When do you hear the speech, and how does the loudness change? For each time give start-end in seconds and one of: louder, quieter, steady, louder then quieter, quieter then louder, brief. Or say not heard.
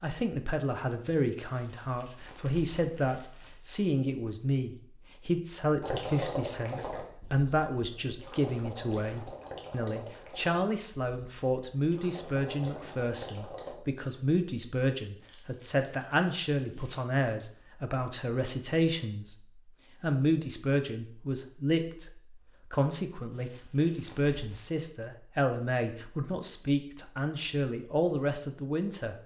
0.0-19.4 steady
20.0-29.1 steady.